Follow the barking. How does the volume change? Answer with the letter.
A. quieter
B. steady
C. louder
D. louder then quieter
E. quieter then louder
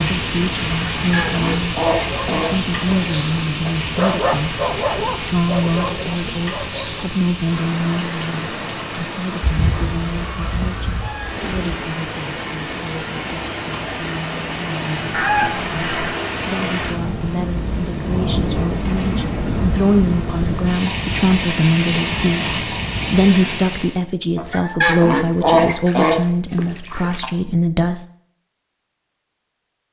D.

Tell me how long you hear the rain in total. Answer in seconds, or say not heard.
24 s.